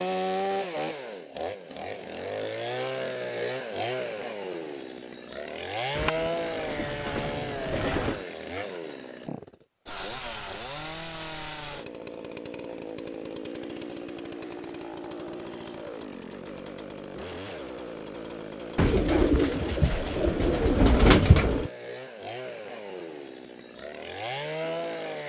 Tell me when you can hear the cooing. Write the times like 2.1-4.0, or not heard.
6.0-8.2, 18.8-21.7.